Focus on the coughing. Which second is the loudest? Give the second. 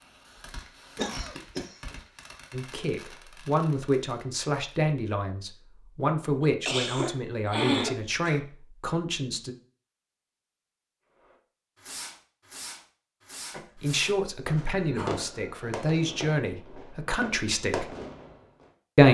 8 s.